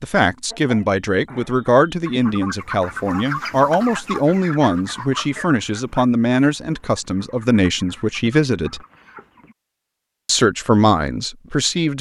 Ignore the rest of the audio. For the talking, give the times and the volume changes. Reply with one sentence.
The talking can be heard from 0.0 to 8.8 s, at a steady volume; and briefly from 10.2 to 11.9 s.